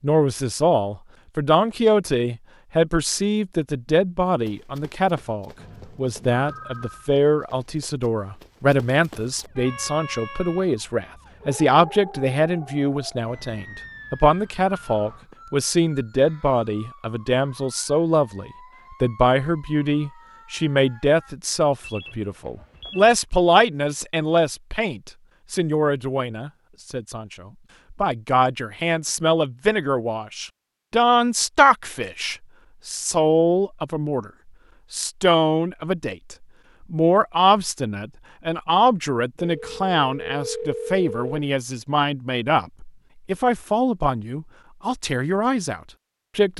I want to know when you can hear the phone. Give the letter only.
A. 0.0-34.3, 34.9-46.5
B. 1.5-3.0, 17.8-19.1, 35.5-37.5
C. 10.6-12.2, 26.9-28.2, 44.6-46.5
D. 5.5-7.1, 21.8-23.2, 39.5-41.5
D.